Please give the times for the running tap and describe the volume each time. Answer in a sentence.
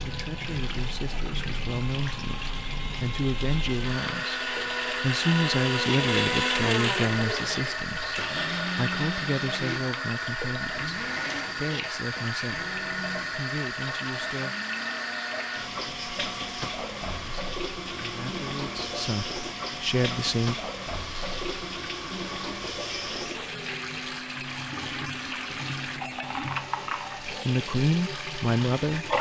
The running tap can be heard from 0.0 to 29.1 s, at a steady volume.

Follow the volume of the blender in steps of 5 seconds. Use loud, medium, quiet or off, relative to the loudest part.
medium, loud, medium, quiet, quiet, quiet.